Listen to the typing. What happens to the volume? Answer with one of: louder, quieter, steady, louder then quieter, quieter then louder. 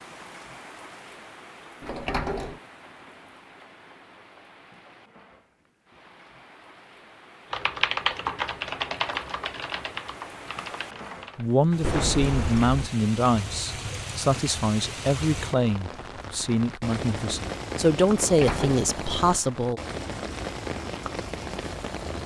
quieter.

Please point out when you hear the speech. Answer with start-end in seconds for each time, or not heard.
11.3-19.8.